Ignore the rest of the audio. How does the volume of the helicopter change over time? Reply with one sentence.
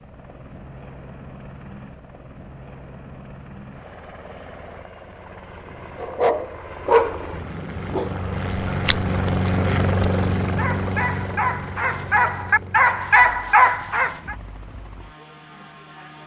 The loudness of the helicopter goes up, then down.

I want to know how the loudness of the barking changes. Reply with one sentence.
The volume of the barking goes down, then up.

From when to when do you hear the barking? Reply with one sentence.
The barking can be heard from 6.0 to 14.3 s.